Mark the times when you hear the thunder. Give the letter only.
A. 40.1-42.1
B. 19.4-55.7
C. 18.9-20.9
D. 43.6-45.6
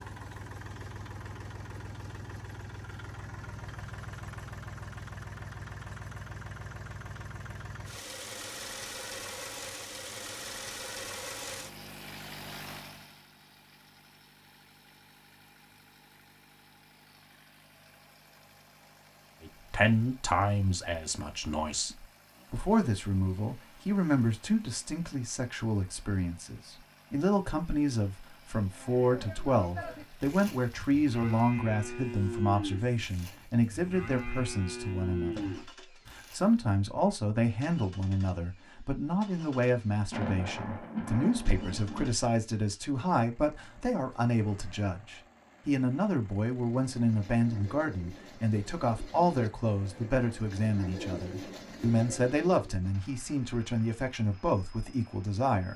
A.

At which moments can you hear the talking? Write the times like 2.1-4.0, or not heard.
19.4-55.7.